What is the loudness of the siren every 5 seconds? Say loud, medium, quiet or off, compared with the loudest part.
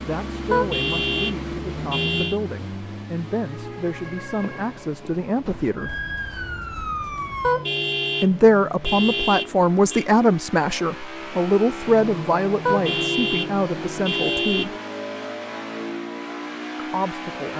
medium, loud, off, off.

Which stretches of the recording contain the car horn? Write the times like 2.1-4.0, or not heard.
0.5-2.4, 7.4-10.1, 12.7-14.7.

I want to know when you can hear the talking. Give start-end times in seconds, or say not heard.
0.0-6.0, 8.2-14.8, 16.8-17.5.